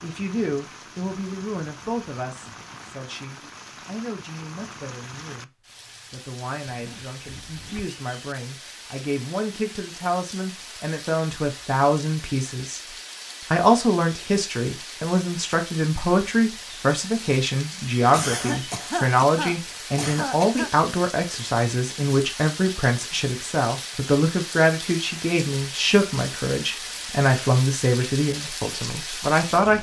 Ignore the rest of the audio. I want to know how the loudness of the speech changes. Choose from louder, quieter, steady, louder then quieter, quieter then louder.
louder.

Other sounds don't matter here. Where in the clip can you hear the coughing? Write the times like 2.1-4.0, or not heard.
18.1-20.7.